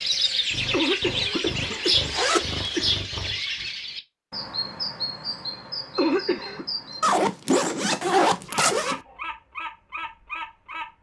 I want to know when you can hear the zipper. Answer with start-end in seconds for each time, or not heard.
1.7-2.8, 7.0-9.0.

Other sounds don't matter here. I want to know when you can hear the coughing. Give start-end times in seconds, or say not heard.
0.7-3.0, 6.0-6.7.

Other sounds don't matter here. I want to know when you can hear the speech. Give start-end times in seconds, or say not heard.
not heard.